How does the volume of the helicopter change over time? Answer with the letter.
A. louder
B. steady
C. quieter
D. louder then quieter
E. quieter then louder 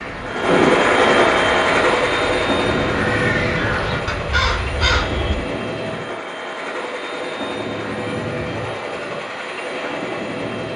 C.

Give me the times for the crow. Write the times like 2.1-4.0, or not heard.
0.0-5.3.